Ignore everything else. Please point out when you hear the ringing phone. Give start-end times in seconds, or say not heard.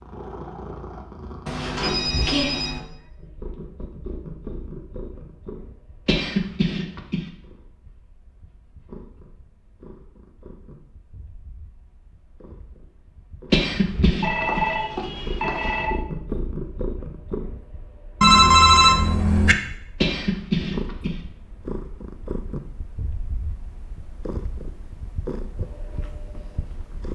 1.4-2.8, 14.2-15.9, 18.2-19.6.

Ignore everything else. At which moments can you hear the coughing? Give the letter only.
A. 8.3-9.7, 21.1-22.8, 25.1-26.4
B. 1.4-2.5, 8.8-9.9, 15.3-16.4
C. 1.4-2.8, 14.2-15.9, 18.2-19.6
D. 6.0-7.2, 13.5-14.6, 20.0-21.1
D.